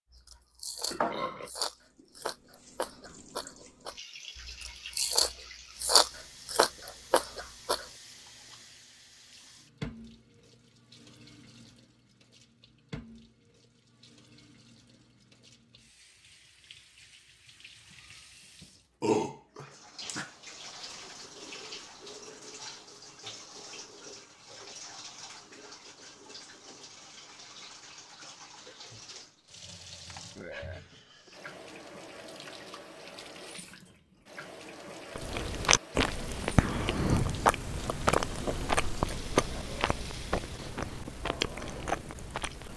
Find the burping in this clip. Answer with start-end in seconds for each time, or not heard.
0.9-1.5, 19.0-20.3, 30.4-30.8.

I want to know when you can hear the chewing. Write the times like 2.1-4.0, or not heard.
0.1-7.9, 35.1-42.7.